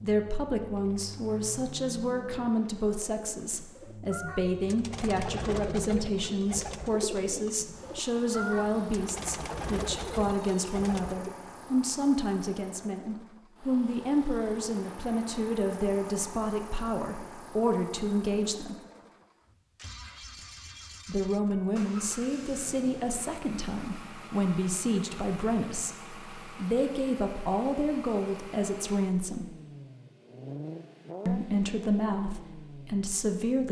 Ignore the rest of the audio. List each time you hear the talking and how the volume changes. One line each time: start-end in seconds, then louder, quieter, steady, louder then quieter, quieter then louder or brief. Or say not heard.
0.0-18.8 steady
21.1-29.6 steady
31.2-33.6 brief.